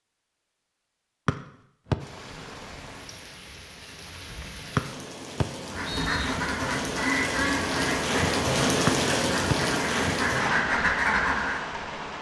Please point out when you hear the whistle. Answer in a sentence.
The whistle can be heard from 1.2 to 1.9 s, from 4.8 to 6.3 s and from 8.8 to 9.6 s.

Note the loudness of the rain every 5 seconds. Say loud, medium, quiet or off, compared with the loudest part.
quiet, loud, loud.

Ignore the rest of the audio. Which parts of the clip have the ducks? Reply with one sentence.
You can hear the ducks from 5.7 to 11.7 s.